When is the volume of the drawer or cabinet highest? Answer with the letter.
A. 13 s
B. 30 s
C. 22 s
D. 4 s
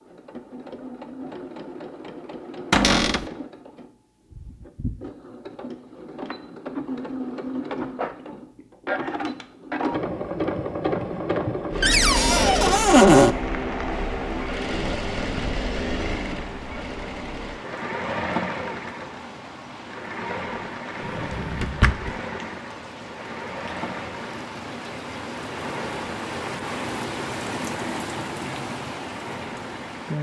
A.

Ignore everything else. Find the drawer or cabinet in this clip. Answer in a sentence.
The drawer or cabinet can be heard from 2.7 to 3.2 s, from 11.8 to 13.3 s and from 21.0 to 22.1 s.